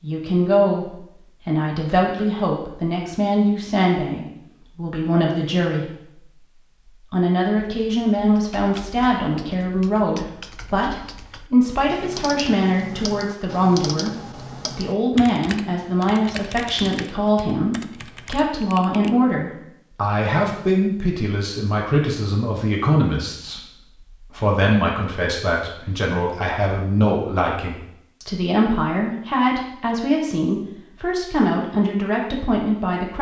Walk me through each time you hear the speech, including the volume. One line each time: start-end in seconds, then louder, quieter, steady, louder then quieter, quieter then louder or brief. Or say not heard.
0.0-33.1 steady.